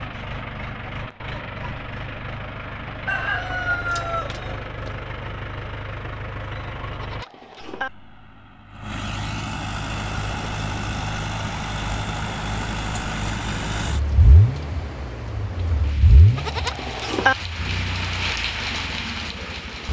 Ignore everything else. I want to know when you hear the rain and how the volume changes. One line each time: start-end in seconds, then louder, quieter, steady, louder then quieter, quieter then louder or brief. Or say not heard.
9.8-19.8 louder.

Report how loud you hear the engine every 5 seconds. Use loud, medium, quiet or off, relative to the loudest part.
medium, medium, loud, loud.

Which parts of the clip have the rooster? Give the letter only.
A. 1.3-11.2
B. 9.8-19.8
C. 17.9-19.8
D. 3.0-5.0
D.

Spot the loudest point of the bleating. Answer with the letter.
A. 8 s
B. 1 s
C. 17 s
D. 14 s
C.